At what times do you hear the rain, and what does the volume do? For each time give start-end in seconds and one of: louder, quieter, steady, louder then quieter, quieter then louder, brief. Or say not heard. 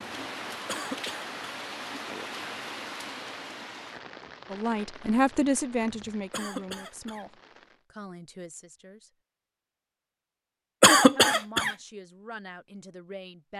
0.0-7.8 quieter.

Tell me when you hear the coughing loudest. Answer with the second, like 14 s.
11 s.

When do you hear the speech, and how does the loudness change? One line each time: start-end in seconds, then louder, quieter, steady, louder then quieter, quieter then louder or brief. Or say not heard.
4.5-9.1 quieter
11.2-13.5 brief.